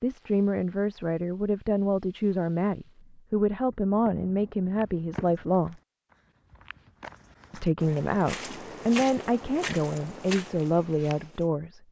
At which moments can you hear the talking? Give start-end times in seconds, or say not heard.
0.0-5.8, 7.5-11.8.